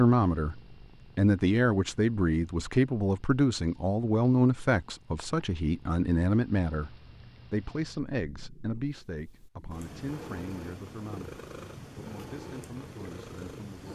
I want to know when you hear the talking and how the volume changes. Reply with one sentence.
You can hear the talking from 0.0 to 13.9 s, getting quieter.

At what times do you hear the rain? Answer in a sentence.
You can't hear the rain here.